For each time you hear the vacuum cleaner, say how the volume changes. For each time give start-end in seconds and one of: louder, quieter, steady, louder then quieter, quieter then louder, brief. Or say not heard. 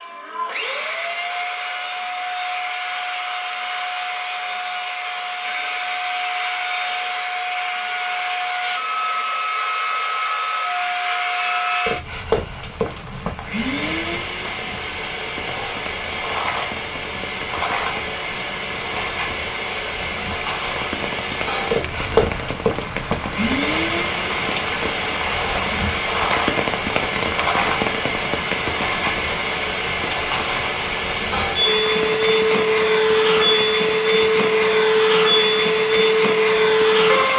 0.0-37.3 louder.